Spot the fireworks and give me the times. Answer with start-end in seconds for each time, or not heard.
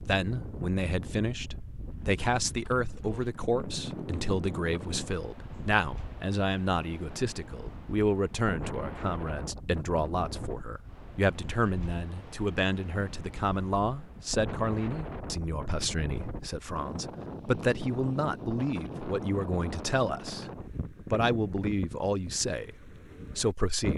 not heard.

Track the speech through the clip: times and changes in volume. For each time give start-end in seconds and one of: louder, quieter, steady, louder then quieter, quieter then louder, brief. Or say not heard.
0.0-23.9 steady.